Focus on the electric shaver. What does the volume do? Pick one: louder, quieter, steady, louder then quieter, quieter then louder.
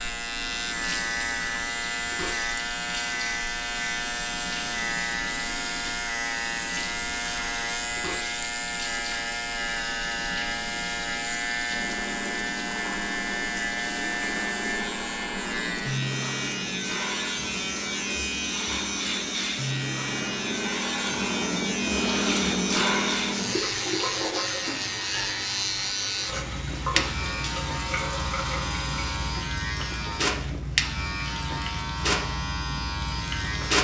steady.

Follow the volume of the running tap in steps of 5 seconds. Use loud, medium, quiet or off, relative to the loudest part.
medium, medium, medium, medium, loud, medium, loud.